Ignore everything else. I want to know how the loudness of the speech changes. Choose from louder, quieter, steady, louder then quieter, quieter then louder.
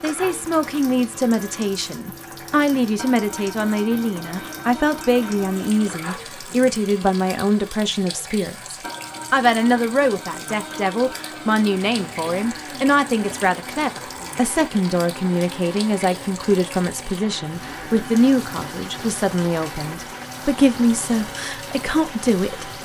steady.